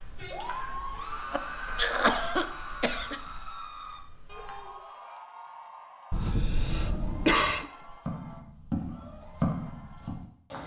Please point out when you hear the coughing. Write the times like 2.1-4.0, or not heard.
1.3-3.2, 6.1-7.7.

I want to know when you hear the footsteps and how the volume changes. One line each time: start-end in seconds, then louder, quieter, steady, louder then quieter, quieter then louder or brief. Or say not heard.
0.0-4.8 quieter
7.8-10.6 brief.